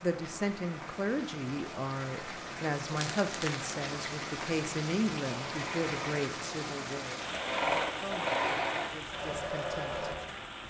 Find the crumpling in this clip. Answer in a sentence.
The crumpling can be heard from 3.0 to 3.7 s.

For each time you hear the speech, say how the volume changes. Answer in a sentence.
The speech can be heard from 0.0 to 10.1 s, getting quieter.